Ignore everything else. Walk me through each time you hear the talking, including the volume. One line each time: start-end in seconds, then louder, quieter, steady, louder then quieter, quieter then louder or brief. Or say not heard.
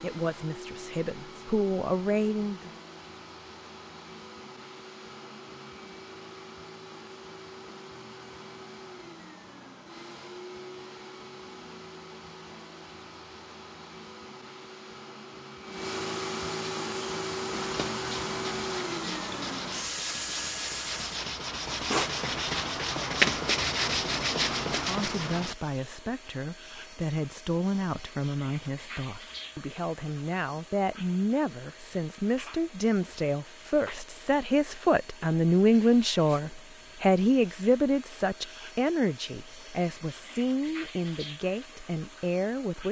0.0-2.7 brief
24.8-42.8 louder then quieter.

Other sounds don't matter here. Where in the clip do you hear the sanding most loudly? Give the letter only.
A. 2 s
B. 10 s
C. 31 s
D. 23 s
D.